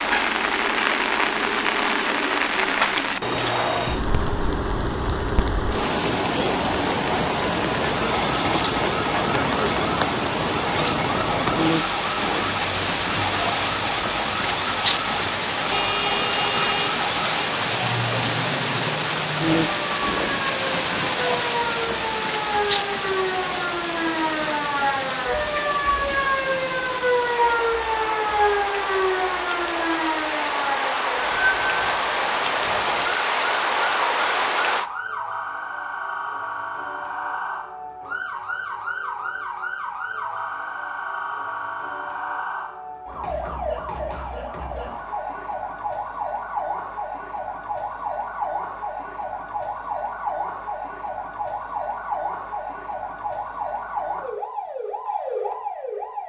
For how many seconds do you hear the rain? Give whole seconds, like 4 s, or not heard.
35 s.